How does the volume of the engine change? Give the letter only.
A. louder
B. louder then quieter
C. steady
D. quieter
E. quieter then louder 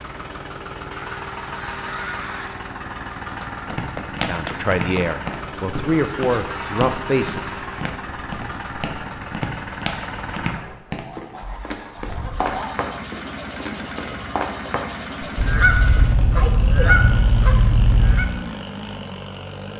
C.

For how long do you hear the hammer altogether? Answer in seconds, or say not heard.
2 s.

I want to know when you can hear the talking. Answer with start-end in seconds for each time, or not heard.
4.2-7.5.